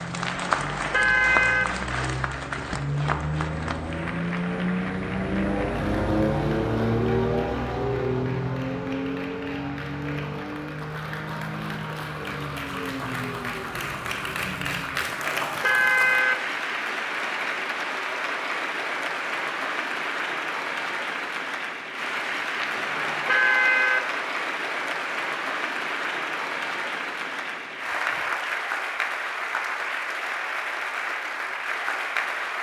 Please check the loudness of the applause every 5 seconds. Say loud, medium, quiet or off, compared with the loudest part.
loud, medium, medium, loud, loud, loud, loud.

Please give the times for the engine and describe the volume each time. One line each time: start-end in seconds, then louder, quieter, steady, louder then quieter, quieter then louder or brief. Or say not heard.
0.0-15.2 louder then quieter.